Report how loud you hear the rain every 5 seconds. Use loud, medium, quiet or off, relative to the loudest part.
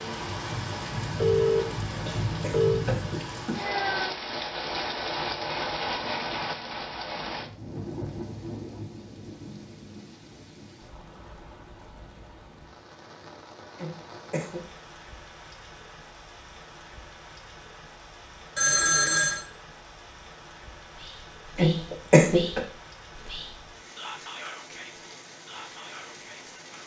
loud, loud, quiet, quiet, quiet, quiet.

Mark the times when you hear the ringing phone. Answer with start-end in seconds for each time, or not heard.
1.1-2.9, 18.6-19.4.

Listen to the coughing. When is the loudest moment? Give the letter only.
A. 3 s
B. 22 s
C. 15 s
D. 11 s
B.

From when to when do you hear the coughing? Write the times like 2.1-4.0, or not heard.
1.9-3.7, 13.8-14.7, 21.6-22.6.